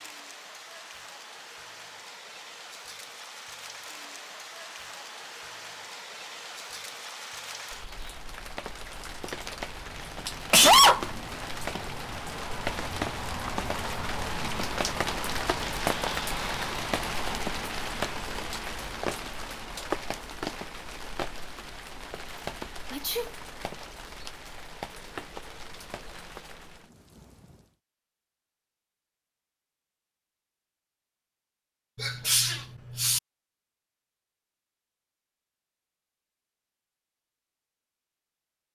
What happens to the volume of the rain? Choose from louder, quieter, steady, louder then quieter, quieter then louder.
louder then quieter.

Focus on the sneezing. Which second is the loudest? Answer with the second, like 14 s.
11 s.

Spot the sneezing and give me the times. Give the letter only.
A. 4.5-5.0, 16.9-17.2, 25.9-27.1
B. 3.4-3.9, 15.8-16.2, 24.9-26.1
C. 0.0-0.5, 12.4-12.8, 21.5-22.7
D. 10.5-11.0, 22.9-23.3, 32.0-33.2
D.